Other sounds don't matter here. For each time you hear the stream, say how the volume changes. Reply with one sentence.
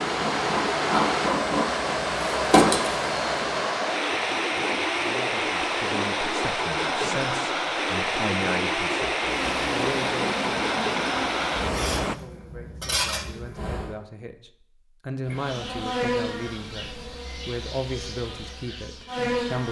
You can hear the stream from 0.0 to 12.2 s, at a steady volume.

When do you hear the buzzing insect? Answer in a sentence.
You can hear the buzzing insect from 0.0 to 3.6 s, from 9.2 to 13.9 s and from 15.2 to 19.6 s.